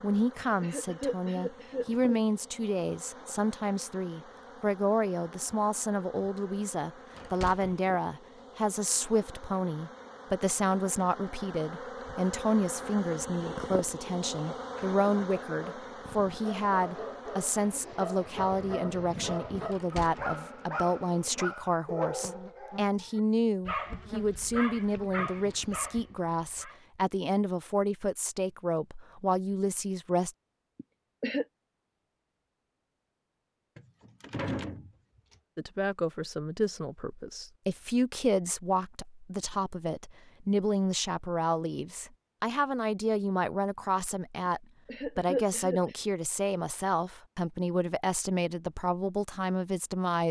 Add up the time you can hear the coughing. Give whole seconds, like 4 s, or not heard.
4 s.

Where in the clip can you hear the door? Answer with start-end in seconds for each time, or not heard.
7.2-7.8, 19.7-20.4, 33.8-34.9.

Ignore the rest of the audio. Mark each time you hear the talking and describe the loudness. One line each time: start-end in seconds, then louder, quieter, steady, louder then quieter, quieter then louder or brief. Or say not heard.
0.0-30.3 steady
35.5-50.2 steady.